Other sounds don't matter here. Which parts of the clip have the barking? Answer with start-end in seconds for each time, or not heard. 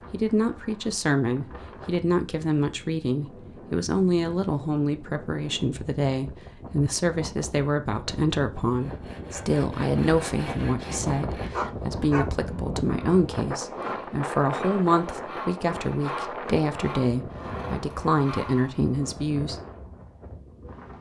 11.5-12.3.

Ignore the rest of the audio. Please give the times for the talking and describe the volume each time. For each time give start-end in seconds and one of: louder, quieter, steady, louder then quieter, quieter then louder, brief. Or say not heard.
0.1-19.6 steady.